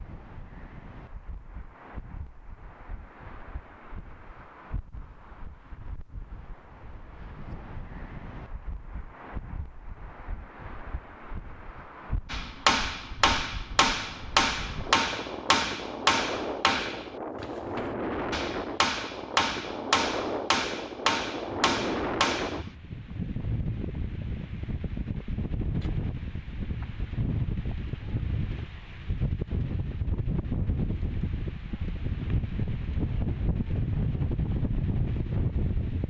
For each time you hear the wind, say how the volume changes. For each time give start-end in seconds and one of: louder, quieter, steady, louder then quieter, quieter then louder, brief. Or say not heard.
0.0-36.0 louder.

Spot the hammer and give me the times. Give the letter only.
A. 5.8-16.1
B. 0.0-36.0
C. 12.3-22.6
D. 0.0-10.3
C.